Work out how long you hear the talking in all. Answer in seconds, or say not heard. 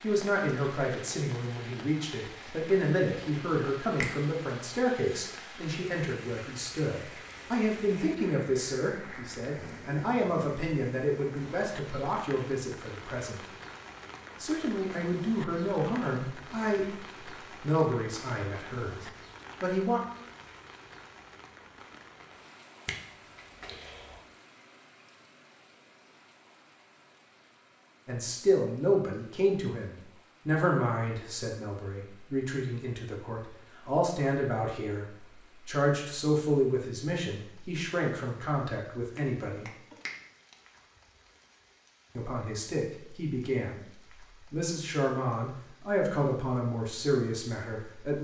37 s.